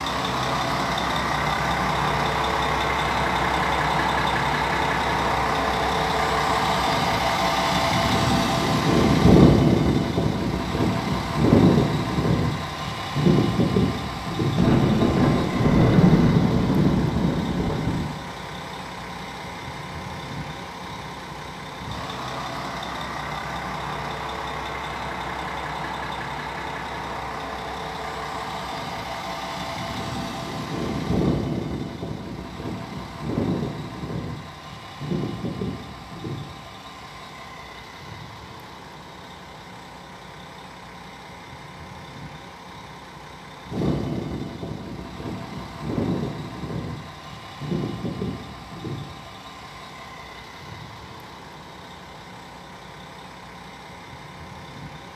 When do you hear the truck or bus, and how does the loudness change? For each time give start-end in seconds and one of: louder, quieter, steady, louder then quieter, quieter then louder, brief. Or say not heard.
0.0-55.1 quieter.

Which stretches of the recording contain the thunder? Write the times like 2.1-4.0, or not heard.
14.6-18.1.